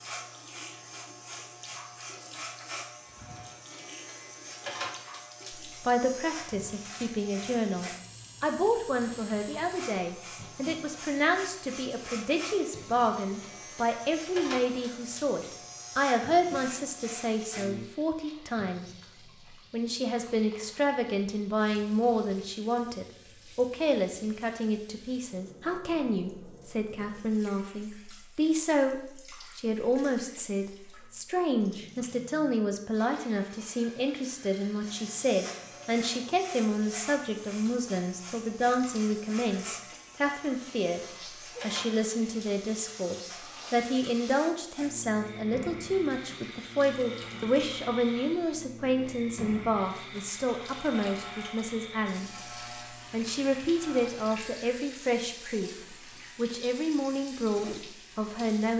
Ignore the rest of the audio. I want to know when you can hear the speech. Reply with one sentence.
The speech can be heard from 5.7 to 18.9 s, from 19.5 to 41.0 s, from 41.6 to 52.5 s and from 53.1 to 58.7 s.